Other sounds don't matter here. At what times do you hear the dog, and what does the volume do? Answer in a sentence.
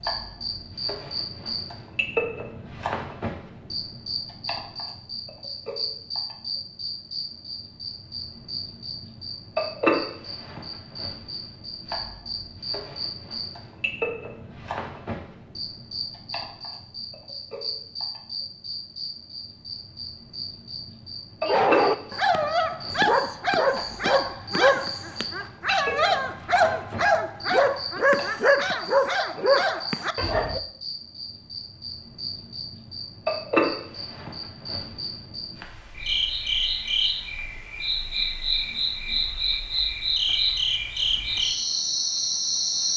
The dog can be heard from 21.4 to 30.6 s, at a steady volume.